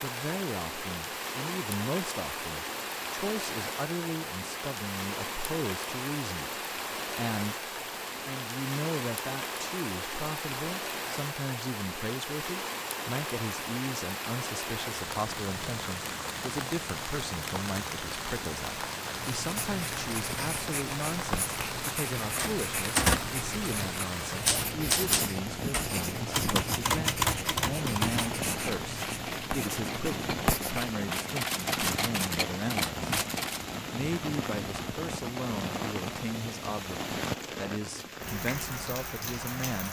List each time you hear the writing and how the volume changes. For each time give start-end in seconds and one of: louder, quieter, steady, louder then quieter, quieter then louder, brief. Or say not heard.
19.4-30.9 steady.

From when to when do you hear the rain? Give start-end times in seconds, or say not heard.
0.0-39.8.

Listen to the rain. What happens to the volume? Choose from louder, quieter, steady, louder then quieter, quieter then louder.
steady.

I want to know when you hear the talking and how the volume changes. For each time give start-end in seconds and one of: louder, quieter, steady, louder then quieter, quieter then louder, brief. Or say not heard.
0.0-33.0 steady
33.9-39.8 steady.